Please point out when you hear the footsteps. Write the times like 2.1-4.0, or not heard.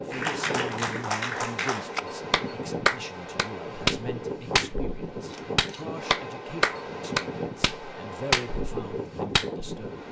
not heard.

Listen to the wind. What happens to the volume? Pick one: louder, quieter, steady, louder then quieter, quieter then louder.
steady.